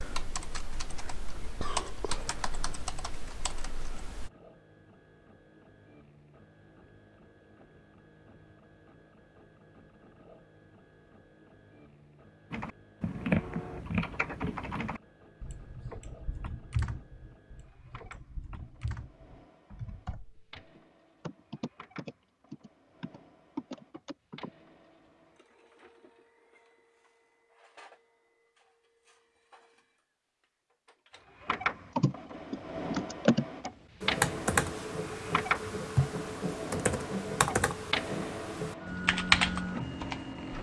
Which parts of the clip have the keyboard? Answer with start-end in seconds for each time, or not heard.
0.0-4.3, 12.5-24.5, 31.9-40.5.